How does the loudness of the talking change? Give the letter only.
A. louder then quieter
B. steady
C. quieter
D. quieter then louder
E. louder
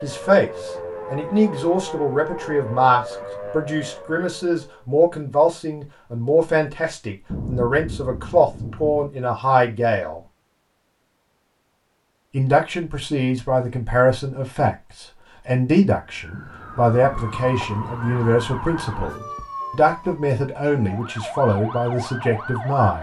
B.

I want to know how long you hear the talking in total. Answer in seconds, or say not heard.
21 s.